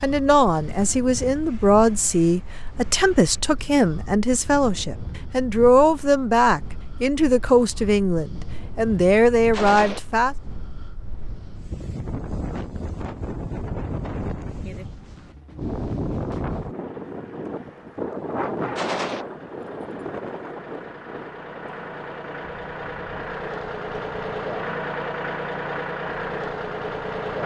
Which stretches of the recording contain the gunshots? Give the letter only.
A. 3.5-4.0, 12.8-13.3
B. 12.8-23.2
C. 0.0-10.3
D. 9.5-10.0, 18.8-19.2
D.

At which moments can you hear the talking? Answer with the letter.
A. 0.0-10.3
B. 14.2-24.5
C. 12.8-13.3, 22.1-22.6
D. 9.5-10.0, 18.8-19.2
A.